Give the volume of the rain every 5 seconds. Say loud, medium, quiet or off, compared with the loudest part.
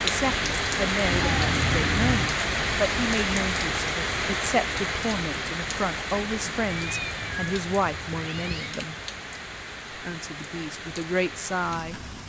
loud, medium, quiet.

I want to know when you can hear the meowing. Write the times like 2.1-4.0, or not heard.
1.0-2.4, 6.7-8.8.